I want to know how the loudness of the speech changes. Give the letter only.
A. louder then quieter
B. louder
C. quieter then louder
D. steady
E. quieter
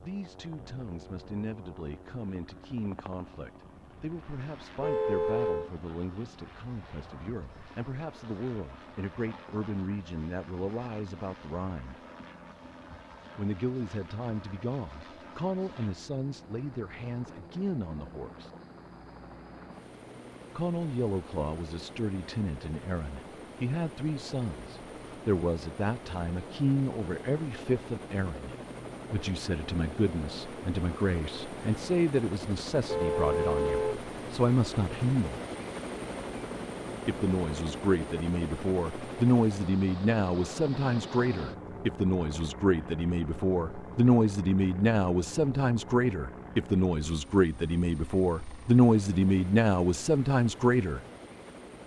B.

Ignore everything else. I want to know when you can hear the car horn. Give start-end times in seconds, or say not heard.
4.8-5.7, 32.9-34.0.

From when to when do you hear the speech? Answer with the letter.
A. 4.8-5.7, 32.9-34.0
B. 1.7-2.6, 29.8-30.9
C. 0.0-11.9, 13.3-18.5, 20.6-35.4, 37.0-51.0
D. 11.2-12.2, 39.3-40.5
C.